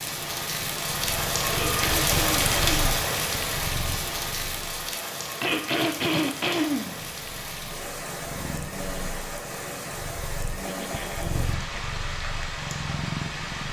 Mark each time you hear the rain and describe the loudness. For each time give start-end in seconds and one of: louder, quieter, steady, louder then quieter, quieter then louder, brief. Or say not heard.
0.0-13.6 quieter.